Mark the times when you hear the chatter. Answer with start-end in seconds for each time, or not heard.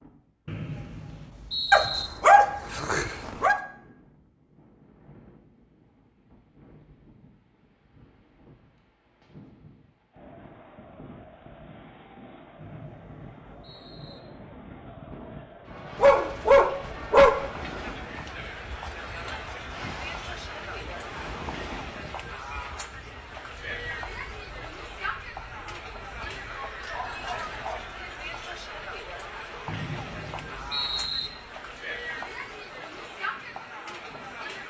10.1-34.6.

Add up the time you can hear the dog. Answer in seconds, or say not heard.
5 s.